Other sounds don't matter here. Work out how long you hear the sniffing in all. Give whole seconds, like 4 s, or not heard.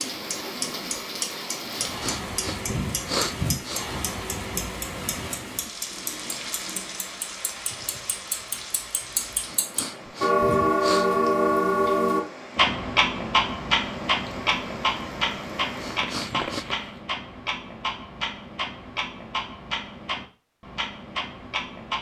5 s.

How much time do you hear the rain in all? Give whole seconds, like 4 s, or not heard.
17 s.